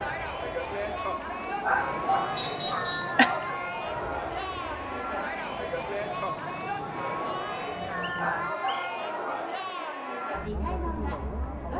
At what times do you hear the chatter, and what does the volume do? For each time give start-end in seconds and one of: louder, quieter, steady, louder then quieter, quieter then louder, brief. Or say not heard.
0.0-11.7 steady.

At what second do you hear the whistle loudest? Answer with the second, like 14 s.
3 s.